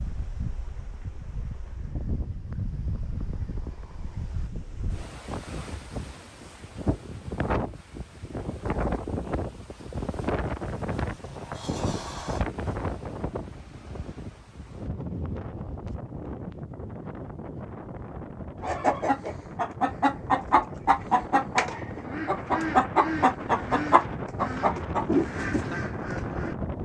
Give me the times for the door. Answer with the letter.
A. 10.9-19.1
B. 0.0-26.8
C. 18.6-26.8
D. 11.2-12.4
D.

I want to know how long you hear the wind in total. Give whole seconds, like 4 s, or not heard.
27 s.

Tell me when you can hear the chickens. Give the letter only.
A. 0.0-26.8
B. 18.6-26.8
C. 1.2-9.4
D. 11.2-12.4
B.